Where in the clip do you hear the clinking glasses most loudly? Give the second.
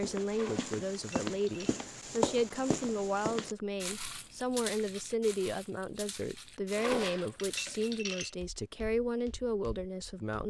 7 s.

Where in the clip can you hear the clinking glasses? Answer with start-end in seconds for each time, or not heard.
0.3-1.9, 6.8-8.3.